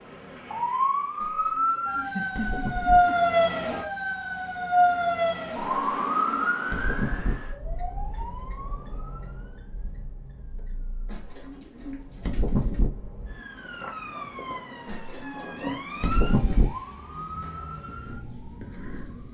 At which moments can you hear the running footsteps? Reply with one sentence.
You can't hear the running footsteps here.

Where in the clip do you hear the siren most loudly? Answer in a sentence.
The volume of the siren peaks at 3 seconds.